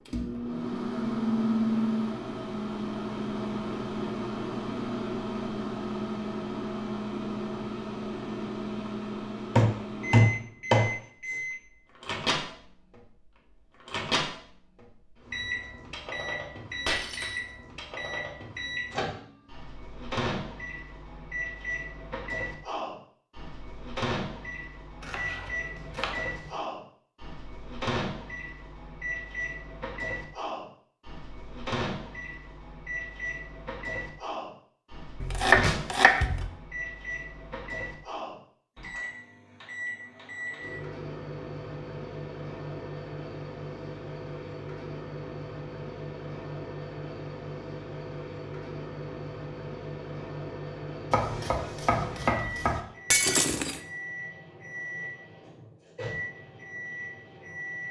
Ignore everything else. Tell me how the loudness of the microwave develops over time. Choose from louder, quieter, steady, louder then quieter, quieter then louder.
quieter.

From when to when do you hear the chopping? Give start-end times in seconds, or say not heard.
9.6-11.3, 25.0-26.5, 35.2-36.5, 51.1-52.8.